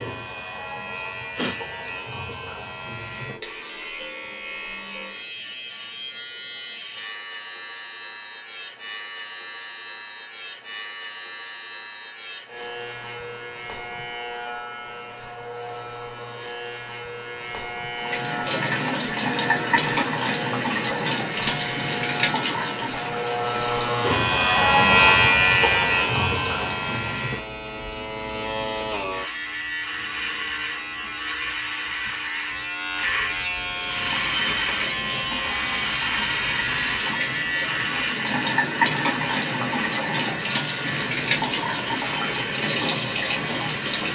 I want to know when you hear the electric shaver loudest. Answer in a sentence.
The volume of the electric shaver peaks at 25 seconds.